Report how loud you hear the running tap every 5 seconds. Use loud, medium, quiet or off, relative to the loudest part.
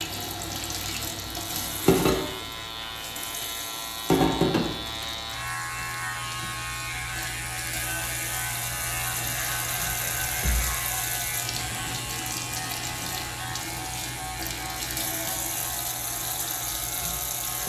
loud, medium, medium, medium.